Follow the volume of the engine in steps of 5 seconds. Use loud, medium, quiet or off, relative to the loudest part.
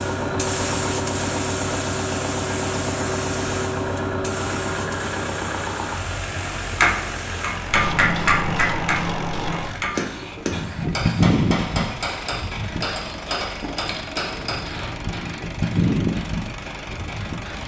loud, medium, medium, medium.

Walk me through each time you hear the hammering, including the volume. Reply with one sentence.
The hammering can be heard from 6.6 to 14.9 s, getting quieter.